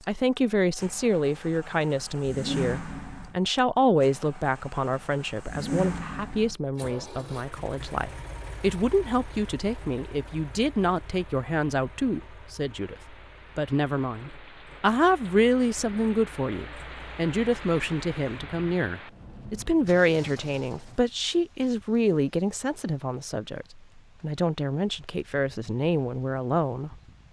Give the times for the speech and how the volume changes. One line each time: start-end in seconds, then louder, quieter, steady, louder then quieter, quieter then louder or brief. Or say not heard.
0.1-26.9 steady.